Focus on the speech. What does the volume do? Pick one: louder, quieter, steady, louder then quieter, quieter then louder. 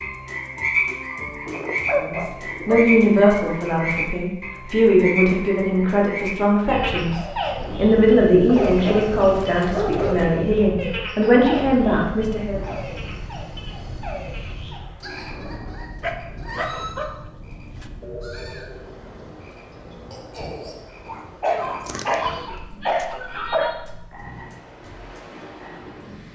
steady.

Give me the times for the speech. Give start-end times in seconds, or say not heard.
1.9-12.7.